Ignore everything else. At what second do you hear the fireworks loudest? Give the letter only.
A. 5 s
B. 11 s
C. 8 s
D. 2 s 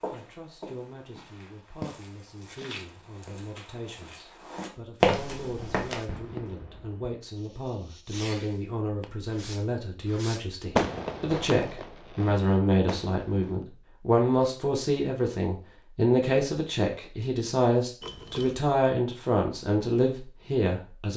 B.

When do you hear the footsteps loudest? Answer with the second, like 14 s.
5 s.